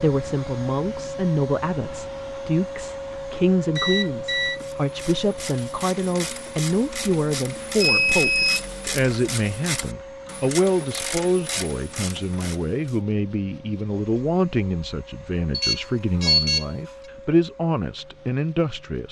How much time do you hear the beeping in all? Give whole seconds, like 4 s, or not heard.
3 s.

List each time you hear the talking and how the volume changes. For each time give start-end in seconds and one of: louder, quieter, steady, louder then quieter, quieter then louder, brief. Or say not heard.
0.0-19.0 steady.